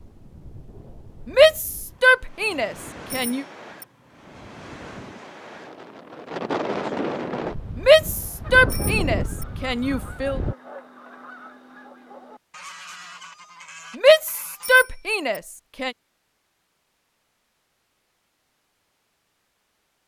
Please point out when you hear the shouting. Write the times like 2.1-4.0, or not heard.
1.2-3.5, 7.8-10.4, 13.9-15.9.